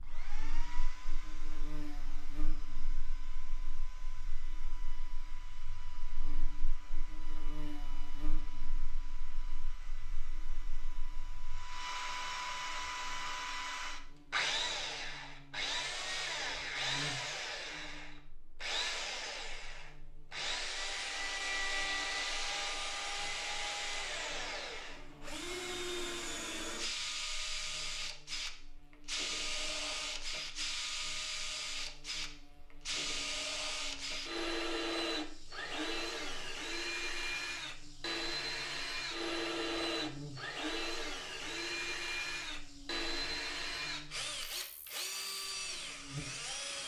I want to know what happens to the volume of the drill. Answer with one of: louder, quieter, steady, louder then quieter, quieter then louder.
louder.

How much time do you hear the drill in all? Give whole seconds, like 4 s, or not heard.
47 s.